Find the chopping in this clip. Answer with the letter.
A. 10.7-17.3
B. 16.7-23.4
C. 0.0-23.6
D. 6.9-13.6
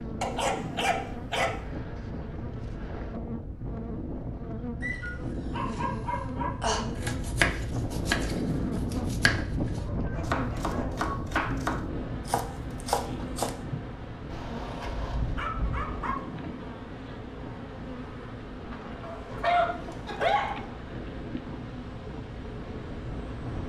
D.